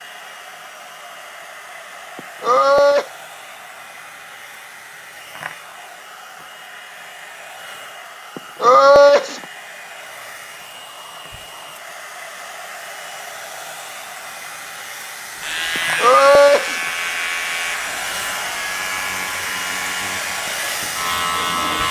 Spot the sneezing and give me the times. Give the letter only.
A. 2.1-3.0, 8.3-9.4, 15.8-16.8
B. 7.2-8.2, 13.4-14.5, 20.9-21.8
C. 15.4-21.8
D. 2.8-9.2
A.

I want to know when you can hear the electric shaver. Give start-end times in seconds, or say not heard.
15.4-21.8.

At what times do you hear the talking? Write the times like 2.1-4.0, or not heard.
not heard.